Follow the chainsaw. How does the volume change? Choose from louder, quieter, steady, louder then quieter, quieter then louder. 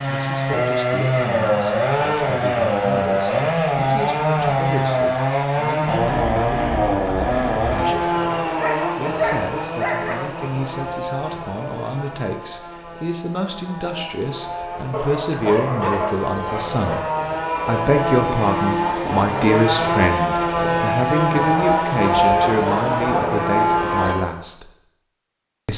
quieter then louder.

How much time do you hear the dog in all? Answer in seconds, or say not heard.
4 s.